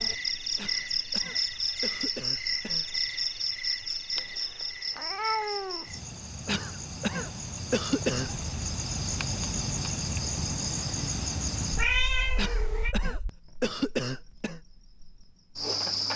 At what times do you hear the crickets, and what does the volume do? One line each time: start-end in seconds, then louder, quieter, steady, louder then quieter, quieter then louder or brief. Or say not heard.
0.0-16.1 quieter.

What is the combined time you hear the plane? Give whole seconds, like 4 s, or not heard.
not heard.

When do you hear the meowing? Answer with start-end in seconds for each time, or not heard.
4.2-5.8, 11.8-12.9.